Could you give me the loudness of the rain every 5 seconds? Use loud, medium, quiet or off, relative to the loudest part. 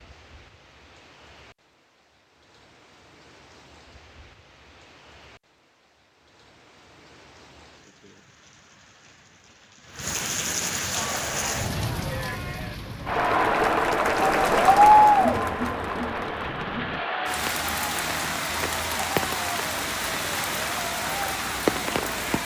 quiet, quiet, loud, loud, loud.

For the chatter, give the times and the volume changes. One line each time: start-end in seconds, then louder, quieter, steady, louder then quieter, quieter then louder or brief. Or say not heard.
10.9-22.4 louder then quieter.